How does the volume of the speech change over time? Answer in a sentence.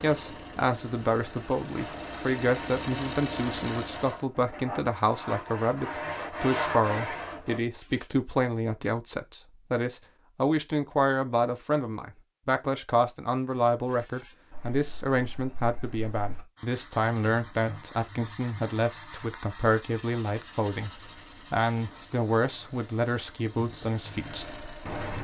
The loudness of the speech stays about the same.